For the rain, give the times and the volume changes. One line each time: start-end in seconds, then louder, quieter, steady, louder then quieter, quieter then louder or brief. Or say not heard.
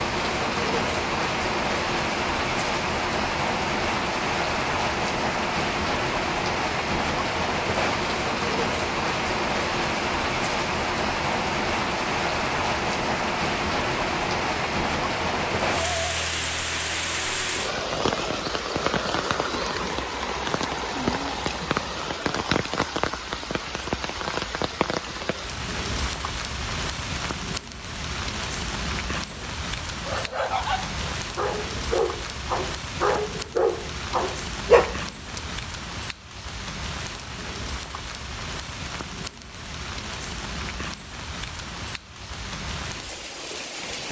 0.0-44.0 quieter.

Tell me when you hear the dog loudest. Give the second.
35 s.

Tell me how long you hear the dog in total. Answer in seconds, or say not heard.
6 s.